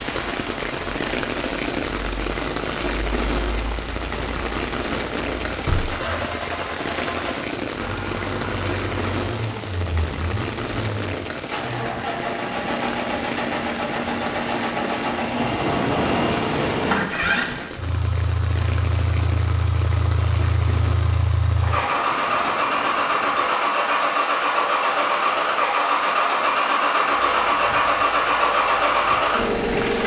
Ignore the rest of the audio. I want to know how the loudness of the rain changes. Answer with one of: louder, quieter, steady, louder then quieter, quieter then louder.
quieter.